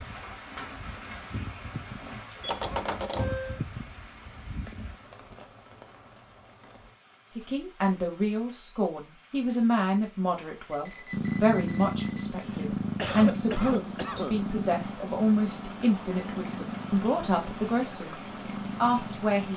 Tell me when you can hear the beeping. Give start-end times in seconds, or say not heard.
2.4-3.6, 10.7-12.2.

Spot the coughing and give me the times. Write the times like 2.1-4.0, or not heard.
12.3-14.4.